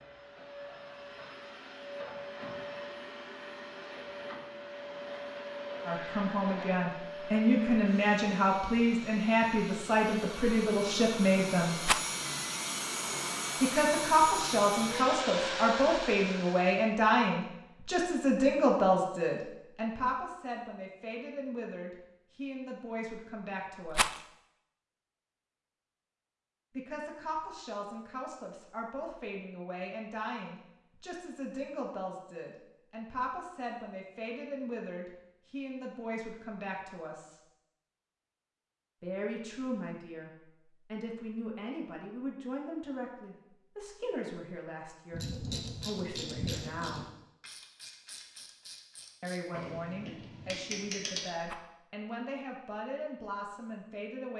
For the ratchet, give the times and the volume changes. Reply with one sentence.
You can hear the ratchet from 45.1 to 51.3 s, getting quieter then louder.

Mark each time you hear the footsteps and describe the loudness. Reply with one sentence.
The footsteps can't be heard in this clip.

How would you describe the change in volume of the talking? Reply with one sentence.
The loudness of the talking goes down.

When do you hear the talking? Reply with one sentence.
The talking can be heard from 5.8 to 11.8 s, from 13.6 to 24.2 s, from 26.8 to 37.4 s, from 39.0 to 47.0 s and from 49.2 to 54.3 s.